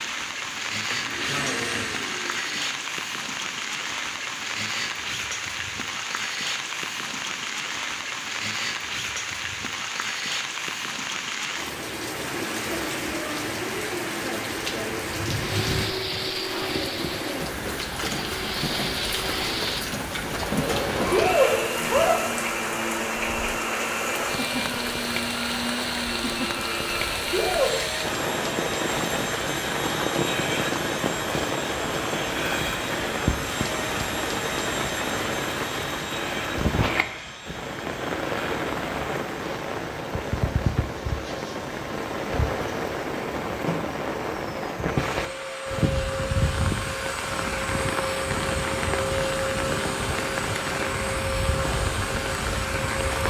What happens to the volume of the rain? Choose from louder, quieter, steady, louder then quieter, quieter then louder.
steady.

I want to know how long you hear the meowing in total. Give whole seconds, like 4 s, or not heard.
2 s.